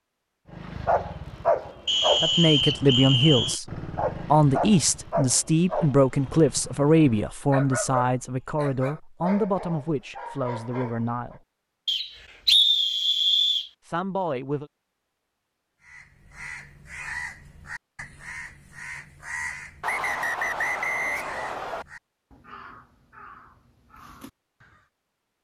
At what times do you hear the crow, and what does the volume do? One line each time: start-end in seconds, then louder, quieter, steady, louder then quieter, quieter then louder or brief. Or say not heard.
15.8-24.9 quieter.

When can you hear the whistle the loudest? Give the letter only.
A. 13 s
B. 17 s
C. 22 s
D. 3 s
A.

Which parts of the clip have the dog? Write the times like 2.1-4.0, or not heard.
0.5-11.4.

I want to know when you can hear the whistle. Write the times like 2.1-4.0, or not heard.
1.9-3.6, 11.8-13.7, 19.8-21.9.